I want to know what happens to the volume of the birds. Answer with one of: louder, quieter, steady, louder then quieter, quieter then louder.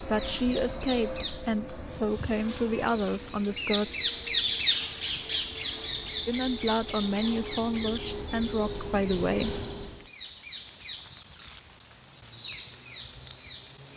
louder then quieter.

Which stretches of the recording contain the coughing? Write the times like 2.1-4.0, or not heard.
not heard.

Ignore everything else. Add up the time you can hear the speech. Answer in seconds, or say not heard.
7 s.